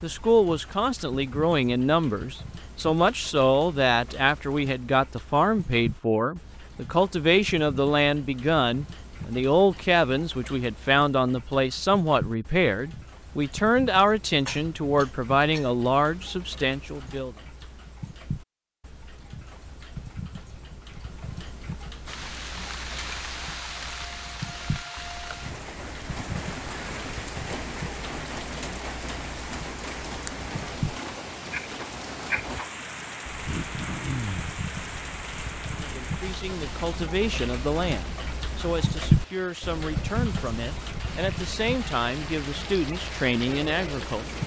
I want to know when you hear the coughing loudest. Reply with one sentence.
The volume of the coughing peaks at 34 seconds.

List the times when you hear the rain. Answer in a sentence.
The rain can be heard from 22.1 to 44.4 s.